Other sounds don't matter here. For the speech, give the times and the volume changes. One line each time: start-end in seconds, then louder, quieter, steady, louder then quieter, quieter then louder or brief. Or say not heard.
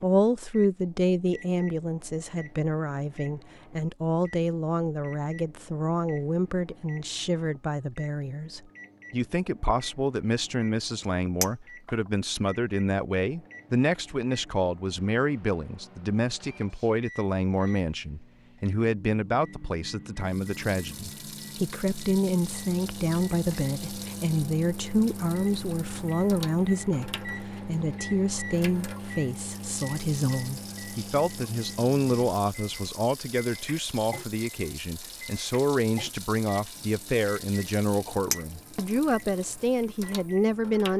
0.0-40.9 steady.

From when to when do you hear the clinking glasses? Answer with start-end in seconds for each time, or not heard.
11.4-11.9, 38.3-38.8.